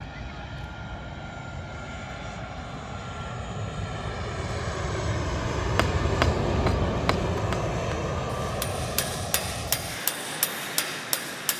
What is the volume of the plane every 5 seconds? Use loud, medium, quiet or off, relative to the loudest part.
medium, loud, medium.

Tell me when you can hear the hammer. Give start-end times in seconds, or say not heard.
6.0-11.5.